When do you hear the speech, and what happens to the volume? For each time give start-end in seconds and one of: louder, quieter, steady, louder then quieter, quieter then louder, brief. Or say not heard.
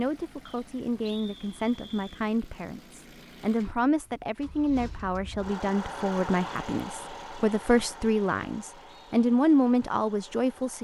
0.0-10.8 louder.